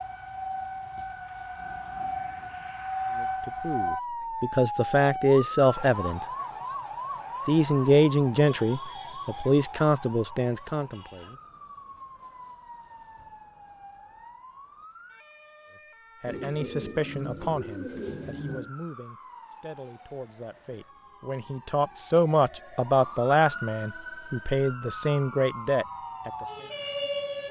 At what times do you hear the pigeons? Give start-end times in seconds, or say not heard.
16.2-18.7.